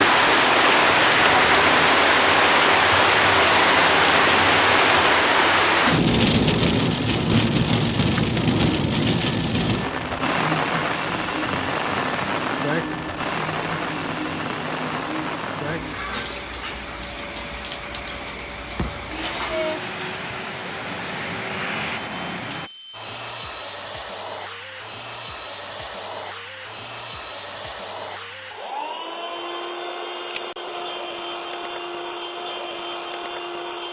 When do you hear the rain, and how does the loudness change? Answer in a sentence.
The rain can be heard from 0.0 to 22.7 s, getting quieter.